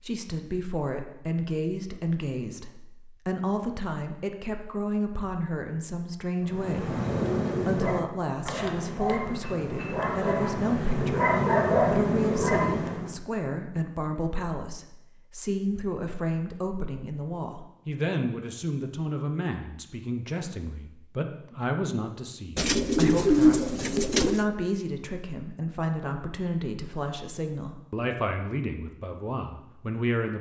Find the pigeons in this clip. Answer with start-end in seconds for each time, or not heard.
22.6-24.4.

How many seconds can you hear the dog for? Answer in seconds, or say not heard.
7 s.